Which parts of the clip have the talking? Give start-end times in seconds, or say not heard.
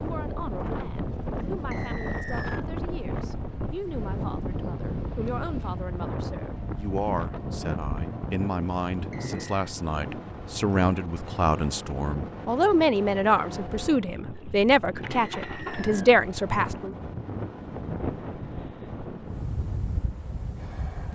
0.0-16.9.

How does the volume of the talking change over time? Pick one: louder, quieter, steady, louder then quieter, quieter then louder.
louder.